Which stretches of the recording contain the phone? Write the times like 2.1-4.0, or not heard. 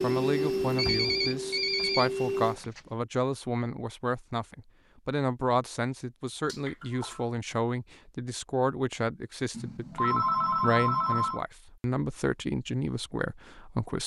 0.8-2.8, 6.5-7.2, 9.5-11.4.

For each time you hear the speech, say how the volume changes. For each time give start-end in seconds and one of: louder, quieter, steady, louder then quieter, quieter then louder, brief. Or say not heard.
0.0-14.0 steady.